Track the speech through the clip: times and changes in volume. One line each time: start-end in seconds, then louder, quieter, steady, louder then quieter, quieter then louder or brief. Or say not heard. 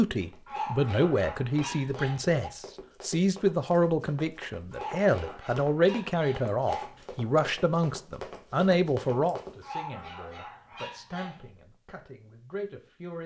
0.0-13.2 quieter.